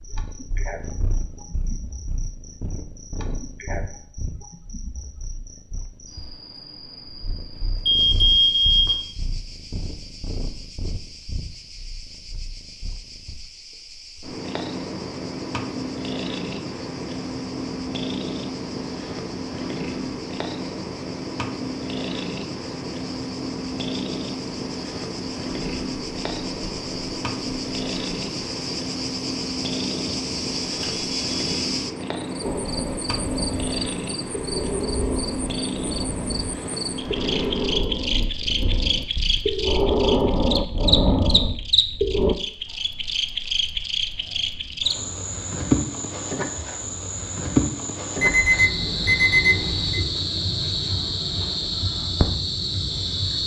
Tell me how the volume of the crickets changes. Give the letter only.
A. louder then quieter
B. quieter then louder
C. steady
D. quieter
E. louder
E.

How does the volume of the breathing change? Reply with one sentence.
The volume of the breathing goes up.